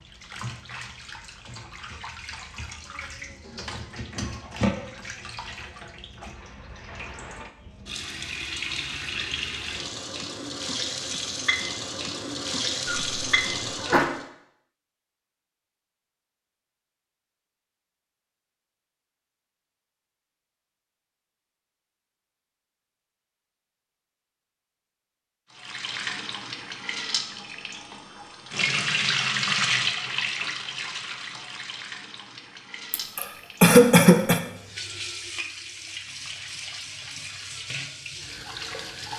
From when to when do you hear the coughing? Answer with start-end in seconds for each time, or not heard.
12.8-14.1, 32.9-34.4.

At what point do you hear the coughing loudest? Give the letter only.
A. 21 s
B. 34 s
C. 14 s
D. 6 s
B.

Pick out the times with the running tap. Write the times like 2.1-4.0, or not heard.
0.0-14.2, 25.6-39.1.